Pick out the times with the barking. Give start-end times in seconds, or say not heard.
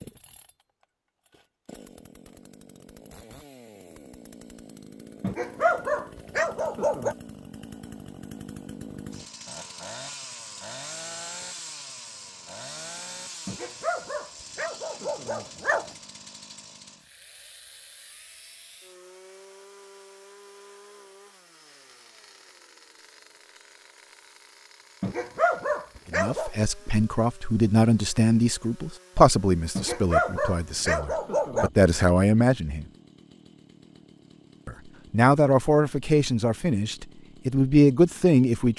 5.2-7.2, 13.4-15.9, 25.0-26.5, 29.8-31.7.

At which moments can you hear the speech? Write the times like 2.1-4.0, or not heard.
26.1-32.9, 34.6-38.7.